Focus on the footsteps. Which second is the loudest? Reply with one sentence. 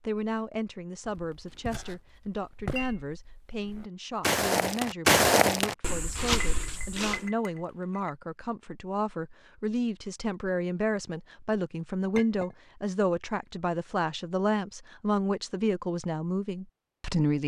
The volume of the footsteps peaks at 5 seconds.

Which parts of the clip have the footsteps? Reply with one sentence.
The footsteps can be heard from 1.1 to 7.3 s.